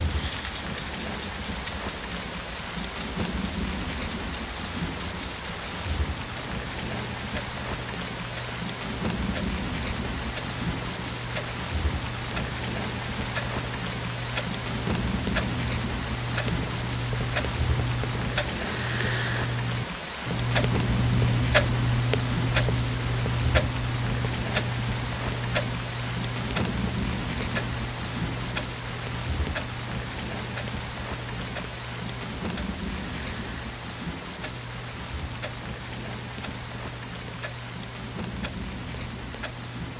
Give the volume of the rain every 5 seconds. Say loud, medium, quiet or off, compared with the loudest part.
loud, loud, loud, loud, loud, loud, loud, medium.